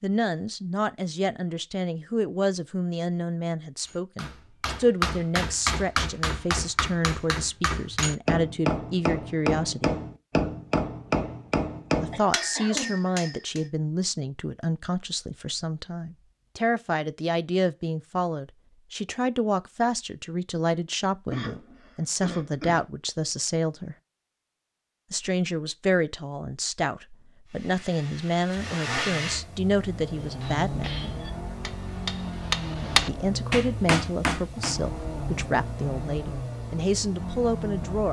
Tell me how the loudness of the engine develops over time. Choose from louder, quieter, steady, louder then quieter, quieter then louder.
steady.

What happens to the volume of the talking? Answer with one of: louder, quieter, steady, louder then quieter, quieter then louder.
steady.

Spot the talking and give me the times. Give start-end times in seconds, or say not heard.
0.0-9.9, 12.0-23.9, 25.1-30.9, 33.0-38.0.